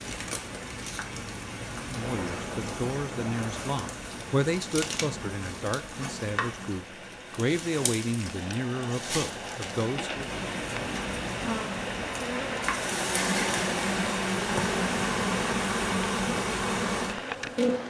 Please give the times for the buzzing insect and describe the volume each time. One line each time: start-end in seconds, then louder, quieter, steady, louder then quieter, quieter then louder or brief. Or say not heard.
0.0-17.8 louder.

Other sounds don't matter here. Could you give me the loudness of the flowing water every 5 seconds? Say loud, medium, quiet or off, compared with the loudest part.
medium, medium, loud, loud.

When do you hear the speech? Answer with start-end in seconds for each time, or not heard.
1.9-10.3.